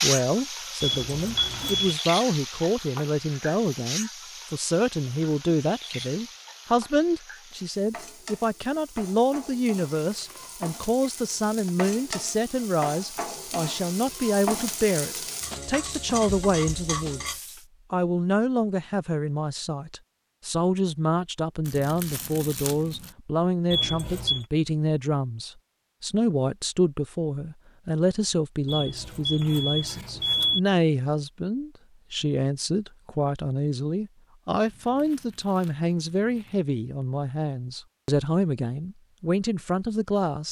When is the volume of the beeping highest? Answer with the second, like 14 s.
30 s.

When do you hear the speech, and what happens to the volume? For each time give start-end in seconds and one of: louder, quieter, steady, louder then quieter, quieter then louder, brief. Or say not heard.
0.0-17.2 steady
17.9-40.4 steady.